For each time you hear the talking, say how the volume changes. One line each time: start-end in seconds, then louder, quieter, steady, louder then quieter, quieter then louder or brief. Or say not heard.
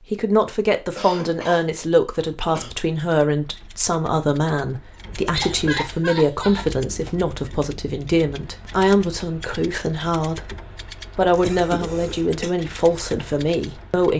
0.0-14.1 steady.